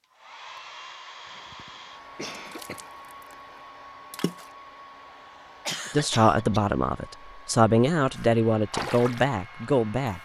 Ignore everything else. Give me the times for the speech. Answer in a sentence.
The speech can be heard from 5.9 to 10.2 s.